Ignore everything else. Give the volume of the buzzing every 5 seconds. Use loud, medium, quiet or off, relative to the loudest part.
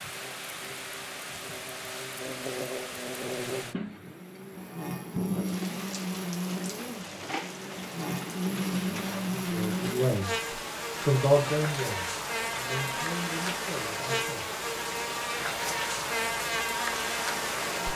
medium, loud, loud, loud.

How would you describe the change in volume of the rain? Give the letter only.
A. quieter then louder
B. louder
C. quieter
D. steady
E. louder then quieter
D.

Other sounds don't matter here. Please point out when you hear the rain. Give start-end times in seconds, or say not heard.
0.0-17.9.